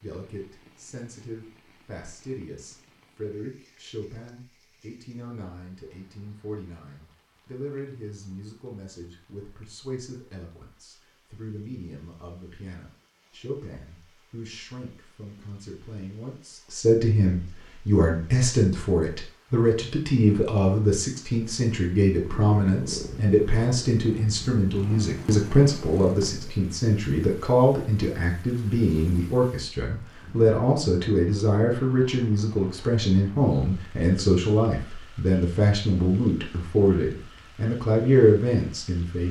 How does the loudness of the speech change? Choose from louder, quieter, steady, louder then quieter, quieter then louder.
louder.